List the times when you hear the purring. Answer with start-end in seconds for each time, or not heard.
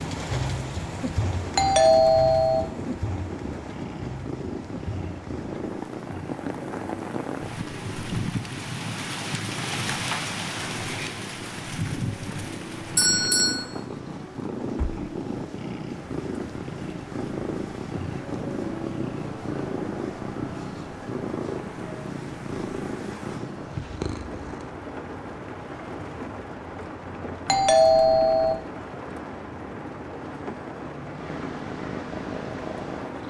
0.0-24.8, 31.1-33.2.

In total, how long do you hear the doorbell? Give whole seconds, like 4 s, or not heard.
3 s.